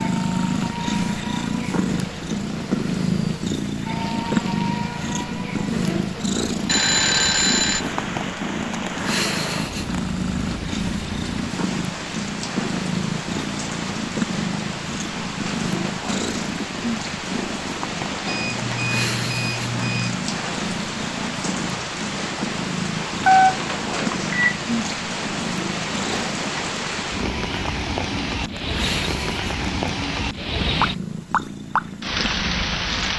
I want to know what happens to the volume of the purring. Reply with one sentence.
The loudness of the purring goes down.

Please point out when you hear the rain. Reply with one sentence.
You can hear the rain from 0.0 to 33.1 s.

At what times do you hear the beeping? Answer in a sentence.
You can hear the beeping from 6.7 to 7.8 s, from 18.2 to 20.1 s and from 23.2 to 24.6 s.